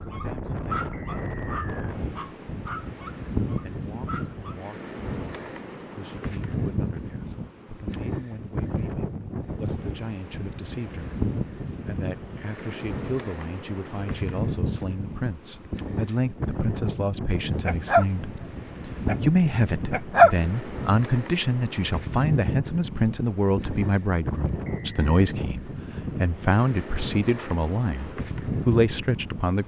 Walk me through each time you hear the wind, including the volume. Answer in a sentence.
The wind can be heard from 0.0 to 29.6 s, at a steady volume.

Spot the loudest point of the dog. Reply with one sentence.
The loudest moment of the dog is at 20 seconds.